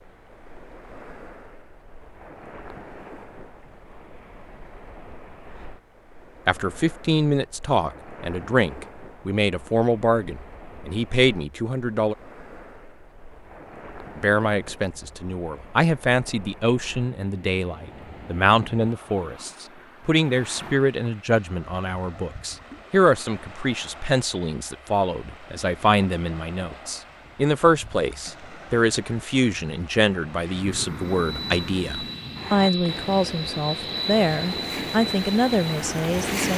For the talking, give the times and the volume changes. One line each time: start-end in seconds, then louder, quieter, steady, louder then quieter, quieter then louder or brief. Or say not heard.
6.5-12.2 steady
14.2-36.5 steady.